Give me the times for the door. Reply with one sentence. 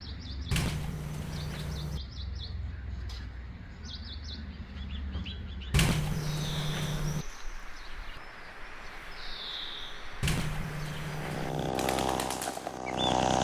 The door can be heard from 0.5 to 2.0 s, from 5.7 to 7.2 s and from 10.2 to 11.7 s.